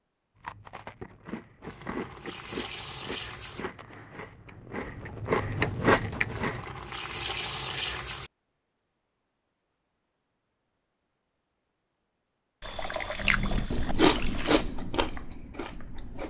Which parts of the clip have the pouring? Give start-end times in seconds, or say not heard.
1.6-3.6, 6.2-8.3, 12.6-14.7.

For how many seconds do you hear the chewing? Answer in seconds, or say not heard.
9 s.